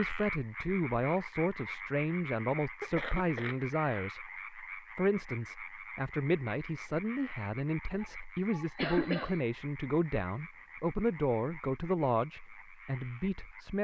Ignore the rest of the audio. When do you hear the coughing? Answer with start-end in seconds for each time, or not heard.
2.8-3.5, 7.8-9.3.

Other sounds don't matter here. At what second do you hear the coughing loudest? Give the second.
9 s.